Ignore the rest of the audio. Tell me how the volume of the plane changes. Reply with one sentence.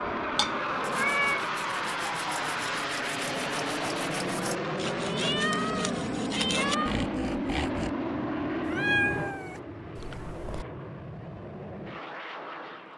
The volume of the plane goes down.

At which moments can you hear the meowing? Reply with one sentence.
The meowing can be heard from 0.3 to 1.4 s, from 5.0 to 7.0 s and from 8.7 to 10.7 s.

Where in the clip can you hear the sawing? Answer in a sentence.
You can hear the sawing from 0.8 to 7.9 s.